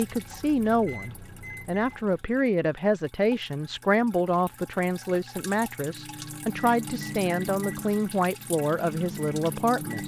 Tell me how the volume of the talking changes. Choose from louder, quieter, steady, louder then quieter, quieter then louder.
steady.